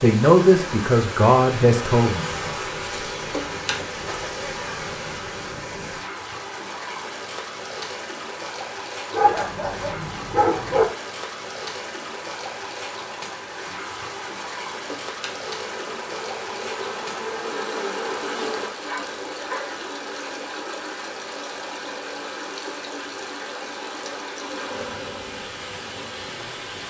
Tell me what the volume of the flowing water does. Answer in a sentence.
The volume of the flowing water stays about the same.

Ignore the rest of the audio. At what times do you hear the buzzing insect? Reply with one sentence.
The buzzing insect can be heard from 0.0 to 5.5 s, from 13.8 to 18.7 s and from 24.4 to 26.8 s.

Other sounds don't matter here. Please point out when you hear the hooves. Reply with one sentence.
The hooves can't be heard in this clip.